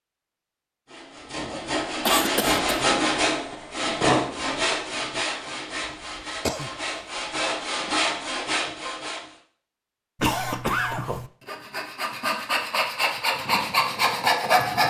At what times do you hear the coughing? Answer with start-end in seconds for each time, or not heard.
2.0-2.6, 5.8-6.7, 10.2-11.3.